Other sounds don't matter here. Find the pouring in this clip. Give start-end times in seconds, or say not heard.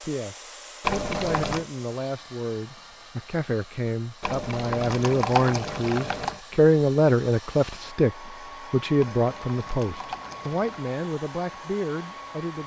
0.8-1.6, 4.2-6.4, 8.9-10.9.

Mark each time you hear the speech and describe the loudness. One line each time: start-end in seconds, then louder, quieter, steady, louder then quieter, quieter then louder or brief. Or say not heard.
0.0-12.6 louder then quieter.